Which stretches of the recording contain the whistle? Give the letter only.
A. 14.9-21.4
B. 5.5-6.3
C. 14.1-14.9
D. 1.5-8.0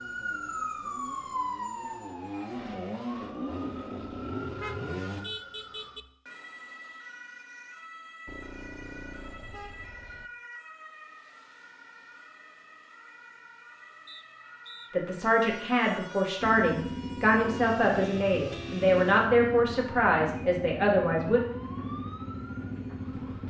C.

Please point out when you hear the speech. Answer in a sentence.
The speech can be heard from 14.9 to 21.4 s.